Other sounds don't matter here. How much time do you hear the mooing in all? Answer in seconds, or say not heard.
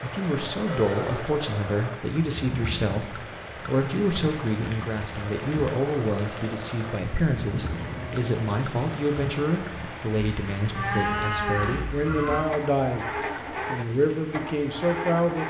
4 s.